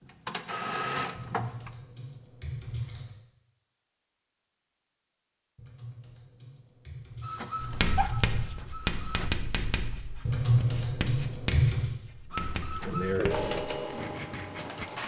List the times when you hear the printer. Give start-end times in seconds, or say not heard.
0.0-1.7, 7.2-9.3, 12.3-15.0.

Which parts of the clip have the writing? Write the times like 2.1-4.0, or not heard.
7.6-14.9.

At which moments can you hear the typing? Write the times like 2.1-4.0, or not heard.
1.1-3.1, 5.5-8.5, 10.2-11.9.